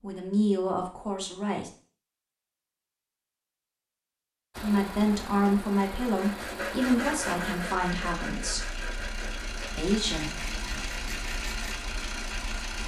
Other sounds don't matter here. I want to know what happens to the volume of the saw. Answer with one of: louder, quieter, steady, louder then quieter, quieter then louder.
quieter.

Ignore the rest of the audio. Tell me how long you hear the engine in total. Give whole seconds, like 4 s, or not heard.
8 s.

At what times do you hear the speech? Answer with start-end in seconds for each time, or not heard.
0.0-1.7, 4.6-8.7, 9.8-10.3.